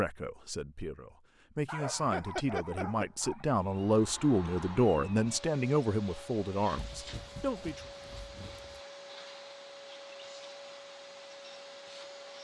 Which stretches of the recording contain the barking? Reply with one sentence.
The barking can be heard from 1.6 to 3.5 s and from 6.8 to 8.8 s.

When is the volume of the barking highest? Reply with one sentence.
The volume of the barking peaks at 2 seconds.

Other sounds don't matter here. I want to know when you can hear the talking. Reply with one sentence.
The talking can be heard from 0.0 to 7.9 s.